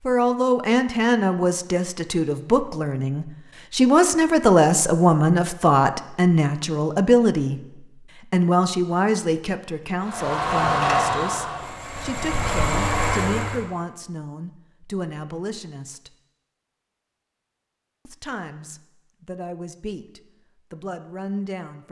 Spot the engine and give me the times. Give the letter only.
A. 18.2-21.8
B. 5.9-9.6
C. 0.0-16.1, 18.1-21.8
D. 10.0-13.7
D.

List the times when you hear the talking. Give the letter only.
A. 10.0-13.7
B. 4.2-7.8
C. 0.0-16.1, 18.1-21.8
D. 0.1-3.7
C.